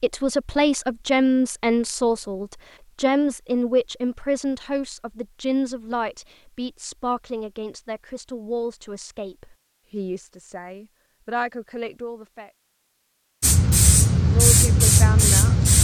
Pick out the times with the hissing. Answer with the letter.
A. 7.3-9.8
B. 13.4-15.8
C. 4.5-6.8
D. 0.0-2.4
B.